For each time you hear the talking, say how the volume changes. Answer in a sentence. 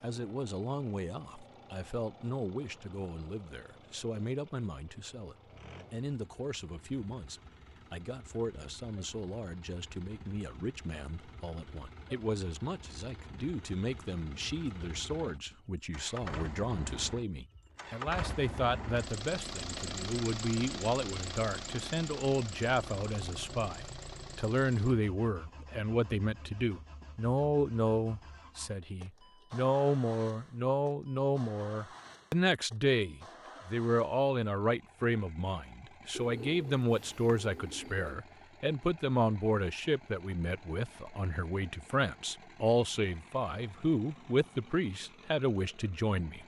You can hear the talking from 0.0 to 46.4 s, getting louder.